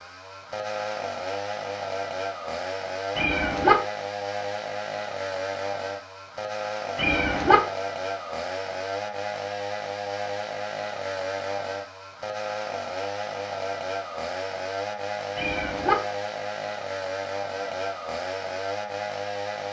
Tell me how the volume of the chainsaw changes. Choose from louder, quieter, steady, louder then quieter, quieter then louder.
steady.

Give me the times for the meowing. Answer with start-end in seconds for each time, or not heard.
3.1-3.8, 7.0-7.5, 15.3-15.9.